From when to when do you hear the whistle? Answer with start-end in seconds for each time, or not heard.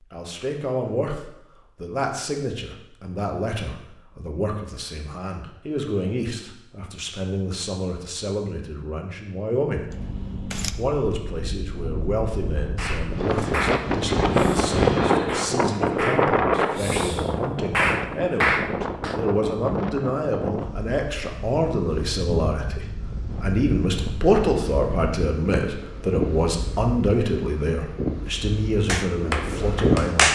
not heard.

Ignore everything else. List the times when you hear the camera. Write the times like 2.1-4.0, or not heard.
9.9-10.8.